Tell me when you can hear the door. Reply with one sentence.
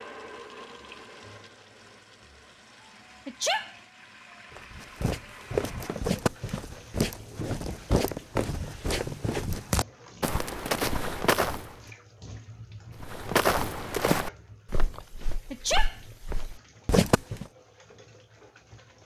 You can't hear the door here.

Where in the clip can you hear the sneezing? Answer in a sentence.
You can hear the sneezing from 3.2 to 3.8 s and from 15.5 to 15.9 s.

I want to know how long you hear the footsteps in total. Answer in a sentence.
The footsteps can be heard for 12 seconds in total.